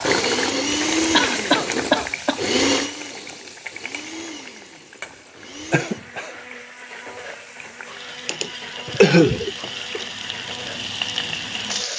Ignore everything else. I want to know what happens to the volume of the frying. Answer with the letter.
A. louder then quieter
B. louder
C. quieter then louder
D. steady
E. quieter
C.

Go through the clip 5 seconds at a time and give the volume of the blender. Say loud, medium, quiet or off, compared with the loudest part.
loud, quiet, quiet.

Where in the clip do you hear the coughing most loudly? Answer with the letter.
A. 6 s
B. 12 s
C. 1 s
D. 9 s
D.